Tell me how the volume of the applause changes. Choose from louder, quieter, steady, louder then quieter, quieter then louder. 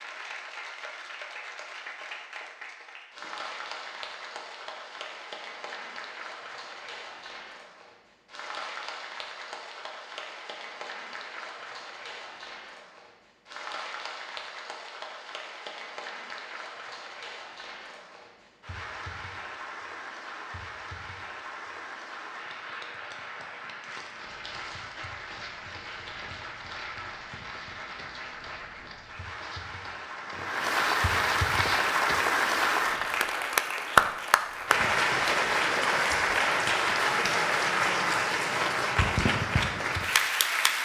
louder.